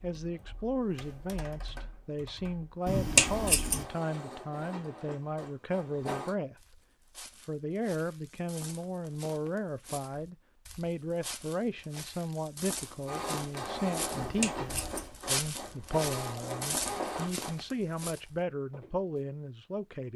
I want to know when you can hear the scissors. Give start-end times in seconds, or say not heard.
2.9-3.9, 14.1-15.1.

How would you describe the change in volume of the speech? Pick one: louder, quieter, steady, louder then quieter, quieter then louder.
steady.